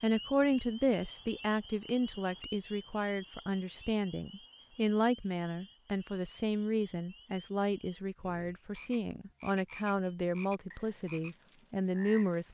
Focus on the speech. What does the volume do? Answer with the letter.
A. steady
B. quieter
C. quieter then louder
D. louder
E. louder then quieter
A.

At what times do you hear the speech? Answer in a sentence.
You can hear the speech from 0.0 to 12.4 s.